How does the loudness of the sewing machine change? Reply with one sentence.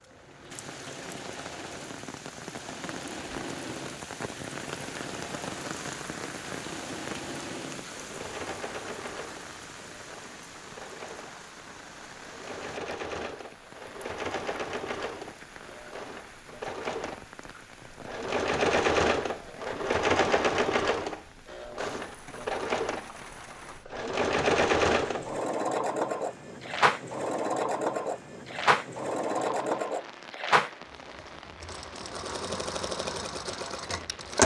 The volume of the sewing machine goes up.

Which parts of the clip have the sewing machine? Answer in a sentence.
The sewing machine can be heard from 0.0 to 34.4 s.